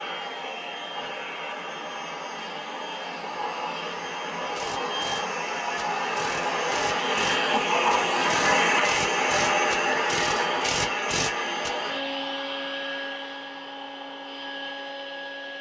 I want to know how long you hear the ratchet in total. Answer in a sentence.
You can hear the ratchet for 7 seconds altogether.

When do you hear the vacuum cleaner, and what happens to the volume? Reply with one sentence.
The vacuum cleaner can be heard from 0.0 to 15.5 s, getting louder then quieter.